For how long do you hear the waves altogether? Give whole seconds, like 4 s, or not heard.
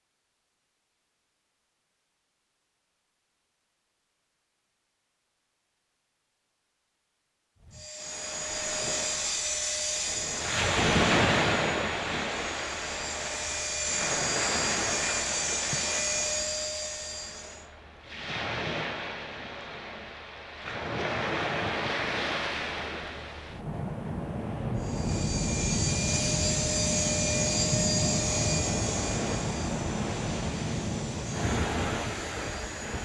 25 s.